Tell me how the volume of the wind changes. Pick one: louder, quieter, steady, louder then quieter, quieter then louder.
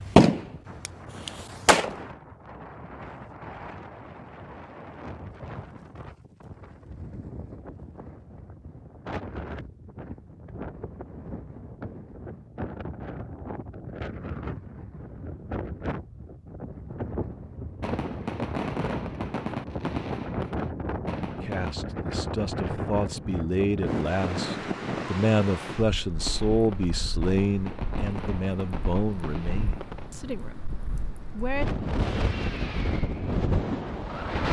louder.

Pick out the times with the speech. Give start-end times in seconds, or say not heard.
21.2-31.6.